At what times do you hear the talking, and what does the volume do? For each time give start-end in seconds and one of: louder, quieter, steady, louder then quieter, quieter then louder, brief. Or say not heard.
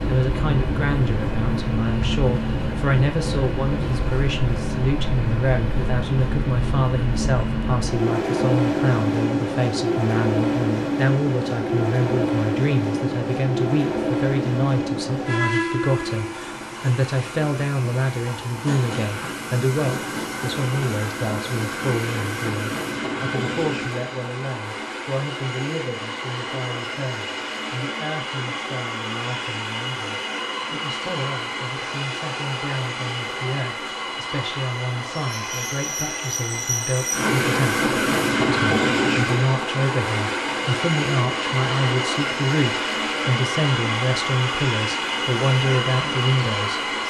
0.1-47.0 quieter then louder.